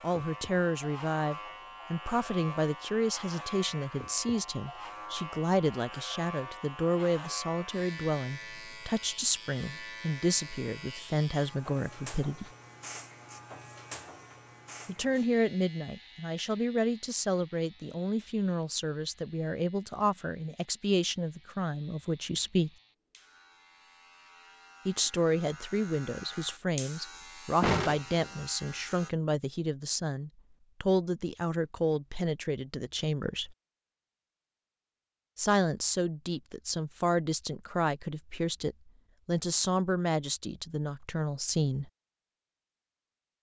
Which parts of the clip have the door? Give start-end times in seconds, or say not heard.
27.6-28.4.